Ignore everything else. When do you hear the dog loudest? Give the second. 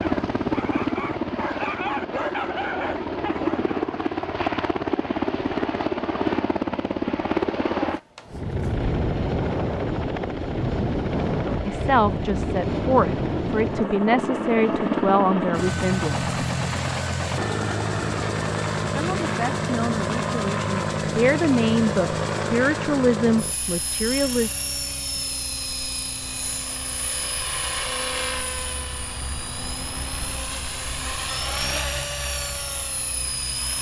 2 s.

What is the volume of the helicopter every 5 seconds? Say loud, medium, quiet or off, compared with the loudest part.
loud, loud, loud, loud, loud, medium, medium.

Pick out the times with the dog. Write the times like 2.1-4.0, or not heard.
0.0-3.8.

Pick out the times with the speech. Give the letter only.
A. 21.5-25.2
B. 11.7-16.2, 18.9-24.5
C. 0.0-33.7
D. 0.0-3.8
B.